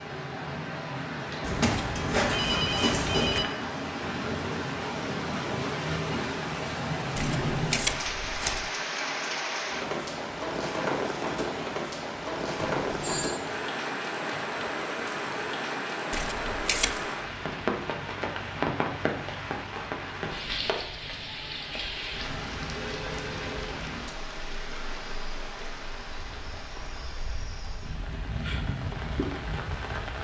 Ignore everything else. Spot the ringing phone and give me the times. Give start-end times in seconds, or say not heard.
1.4-3.5, 12.6-13.4, 22.9-23.8.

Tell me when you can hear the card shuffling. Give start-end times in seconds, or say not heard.
7.2-8.7, 16.1-17.1.